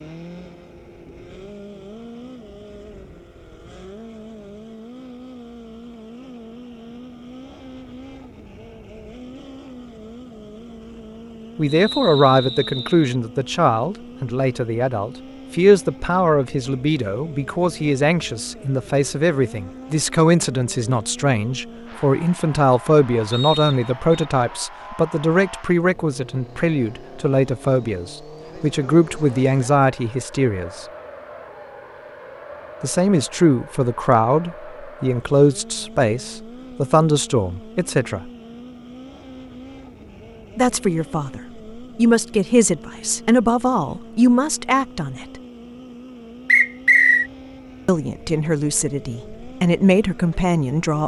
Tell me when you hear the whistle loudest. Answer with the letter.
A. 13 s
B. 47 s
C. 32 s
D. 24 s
B.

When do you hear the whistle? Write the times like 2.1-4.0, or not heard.
11.8-13.1, 23.3-24.2, 46.5-47.3.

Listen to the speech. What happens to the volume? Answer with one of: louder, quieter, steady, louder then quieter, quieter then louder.
steady.